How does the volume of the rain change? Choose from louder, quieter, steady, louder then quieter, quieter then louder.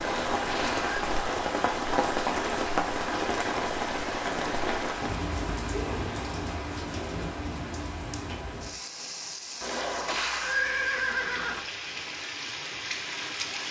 quieter.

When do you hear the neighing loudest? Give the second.
11 s.